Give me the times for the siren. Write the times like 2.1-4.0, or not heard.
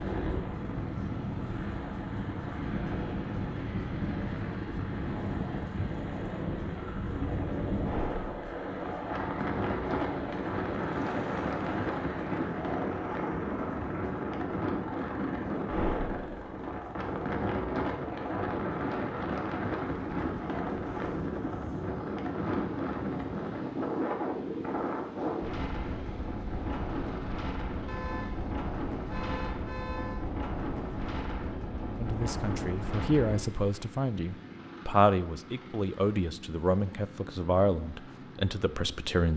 not heard.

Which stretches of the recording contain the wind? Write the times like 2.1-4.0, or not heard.
0.0-33.4.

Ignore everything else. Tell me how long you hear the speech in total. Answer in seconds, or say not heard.
7 s.